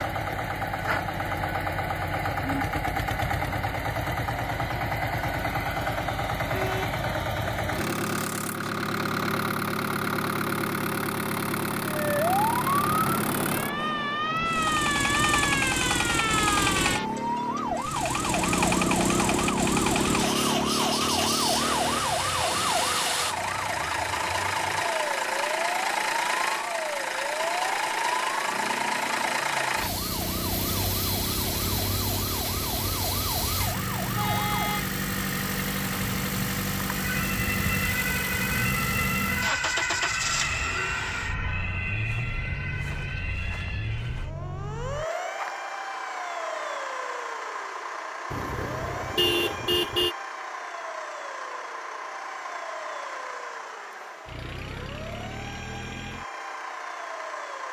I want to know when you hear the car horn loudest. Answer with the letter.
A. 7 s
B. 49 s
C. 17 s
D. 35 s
B.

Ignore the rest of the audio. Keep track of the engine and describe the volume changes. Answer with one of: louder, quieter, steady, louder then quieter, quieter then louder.
quieter.